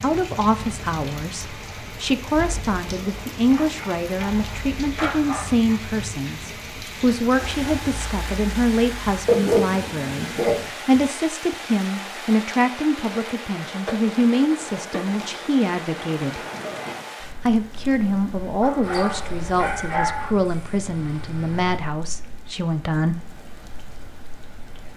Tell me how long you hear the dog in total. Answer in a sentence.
You can hear the dog for 6 seconds altogether.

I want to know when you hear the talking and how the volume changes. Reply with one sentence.
The talking can be heard from 0.0 to 16.4 s, at a steady volume; and from 17.4 to 23.2 s, getting quieter.